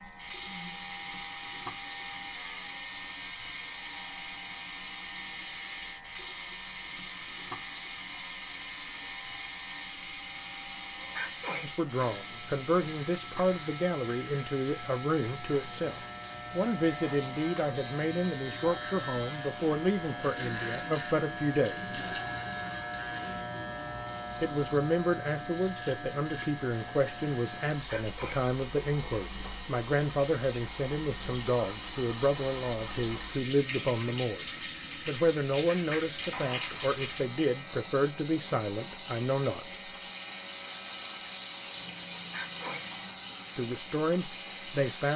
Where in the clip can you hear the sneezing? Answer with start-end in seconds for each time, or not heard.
11.2-11.7, 27.9-28.4, 42.3-42.9.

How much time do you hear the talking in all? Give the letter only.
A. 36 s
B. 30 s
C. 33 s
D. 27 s
D.